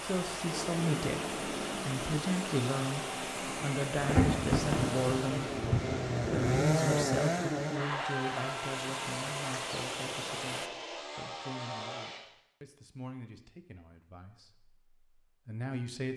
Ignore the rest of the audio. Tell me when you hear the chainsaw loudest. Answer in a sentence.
The loudest moment of the chainsaw is at 7 seconds.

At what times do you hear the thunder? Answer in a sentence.
The thunder can be heard from 4.0 to 6.7 s.